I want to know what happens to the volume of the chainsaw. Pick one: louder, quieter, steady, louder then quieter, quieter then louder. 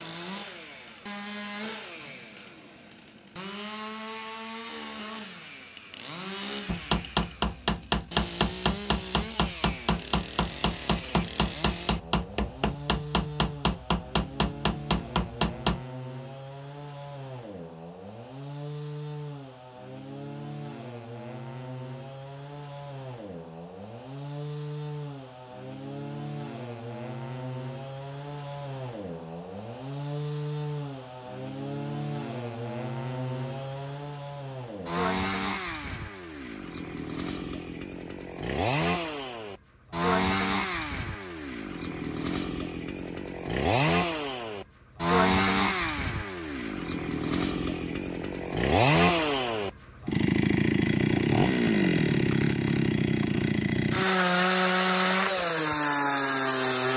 louder.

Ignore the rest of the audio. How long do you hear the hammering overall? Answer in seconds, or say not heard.
9 s.